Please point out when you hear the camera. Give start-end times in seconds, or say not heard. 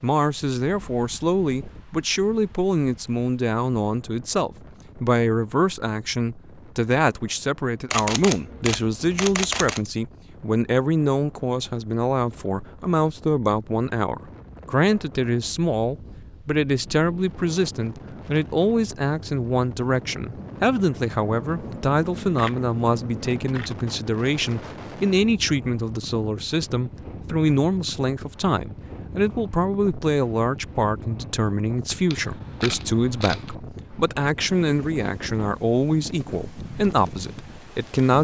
7.9-9.8, 21.2-23.8, 32.1-33.5.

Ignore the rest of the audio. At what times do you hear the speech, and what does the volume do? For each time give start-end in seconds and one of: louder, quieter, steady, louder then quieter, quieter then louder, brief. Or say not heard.
0.0-38.1 steady.